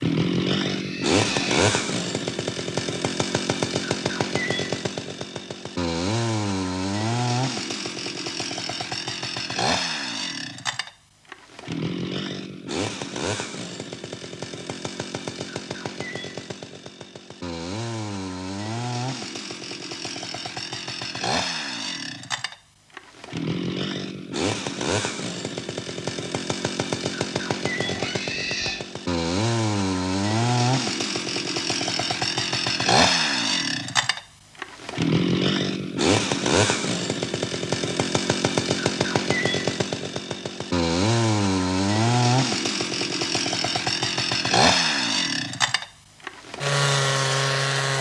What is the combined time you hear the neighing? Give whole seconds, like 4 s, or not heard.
2 s.